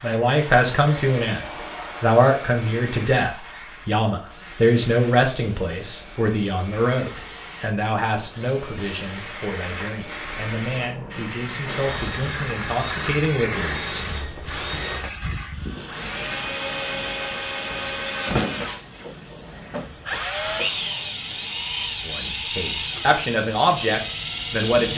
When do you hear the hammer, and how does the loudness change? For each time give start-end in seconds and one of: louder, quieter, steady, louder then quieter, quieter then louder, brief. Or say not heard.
not heard.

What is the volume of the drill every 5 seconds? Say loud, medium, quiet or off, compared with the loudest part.
medium, quiet, medium, loud, loud.